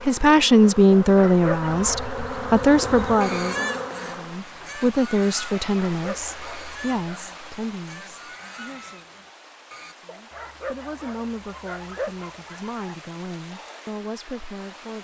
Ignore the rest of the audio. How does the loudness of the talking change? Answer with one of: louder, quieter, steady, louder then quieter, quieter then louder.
quieter.